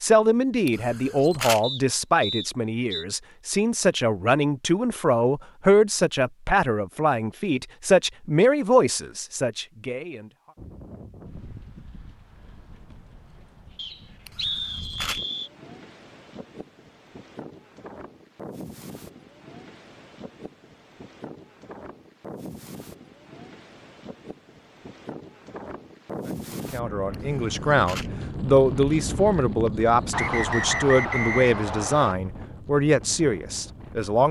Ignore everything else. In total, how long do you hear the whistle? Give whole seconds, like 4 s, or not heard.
5 s.